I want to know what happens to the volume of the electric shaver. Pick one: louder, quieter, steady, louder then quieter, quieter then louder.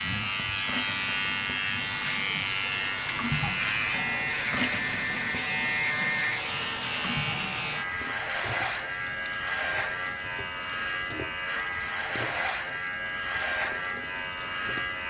steady.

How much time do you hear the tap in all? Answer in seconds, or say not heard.
15 s.